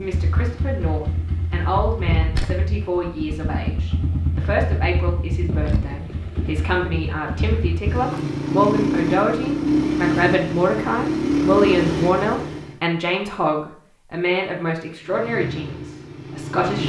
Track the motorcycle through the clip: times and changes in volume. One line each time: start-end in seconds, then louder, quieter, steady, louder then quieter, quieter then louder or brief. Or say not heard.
0.0-12.8 louder
15.1-16.8 brief.